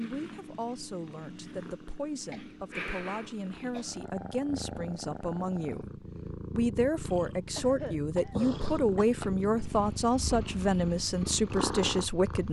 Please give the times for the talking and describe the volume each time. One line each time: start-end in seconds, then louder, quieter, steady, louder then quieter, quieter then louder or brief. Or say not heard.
0.0-12.4 louder.